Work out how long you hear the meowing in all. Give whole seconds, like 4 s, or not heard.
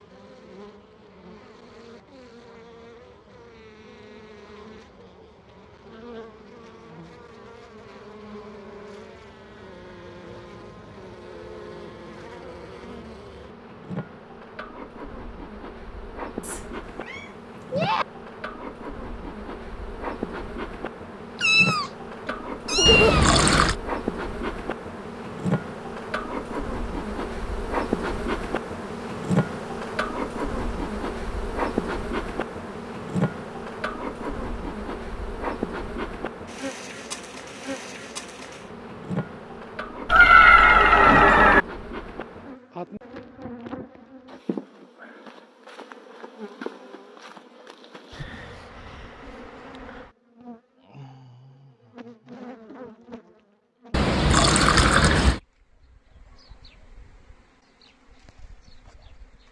5 s.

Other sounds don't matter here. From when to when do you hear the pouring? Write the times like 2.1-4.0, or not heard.
22.9-23.8, 53.9-55.4.